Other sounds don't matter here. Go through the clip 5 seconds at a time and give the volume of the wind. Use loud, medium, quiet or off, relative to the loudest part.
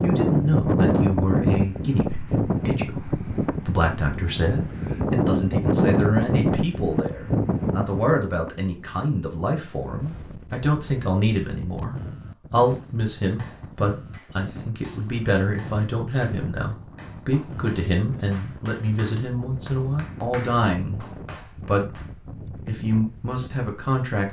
loud, loud, quiet, quiet, quiet.